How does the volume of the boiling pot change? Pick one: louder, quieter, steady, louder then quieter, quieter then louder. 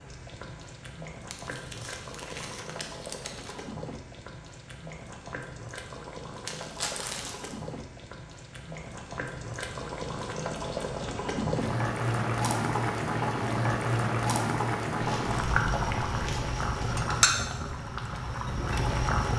louder.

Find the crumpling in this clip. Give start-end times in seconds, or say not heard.
1.2-3.6, 6.5-7.5, 14.9-17.0.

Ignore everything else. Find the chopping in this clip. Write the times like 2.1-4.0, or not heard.
not heard.